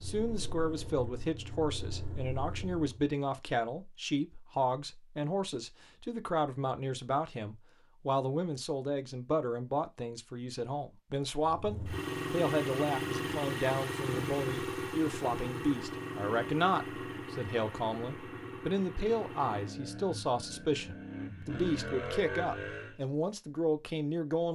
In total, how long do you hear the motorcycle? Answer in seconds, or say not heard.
15 s.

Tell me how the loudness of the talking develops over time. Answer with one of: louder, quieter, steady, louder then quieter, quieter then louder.
steady.